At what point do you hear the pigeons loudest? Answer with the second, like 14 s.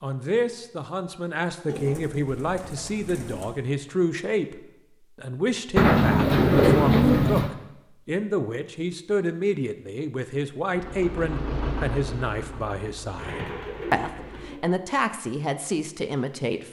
7 s.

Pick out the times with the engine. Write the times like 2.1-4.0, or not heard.
10.7-14.6.